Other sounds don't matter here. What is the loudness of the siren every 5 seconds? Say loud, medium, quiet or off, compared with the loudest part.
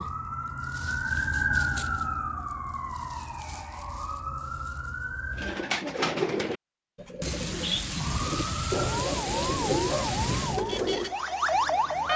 loud, medium, loud.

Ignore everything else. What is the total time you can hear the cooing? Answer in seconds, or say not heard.
6 s.